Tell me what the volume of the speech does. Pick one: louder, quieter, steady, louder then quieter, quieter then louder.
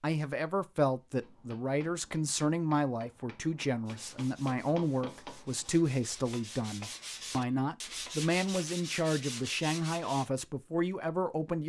steady.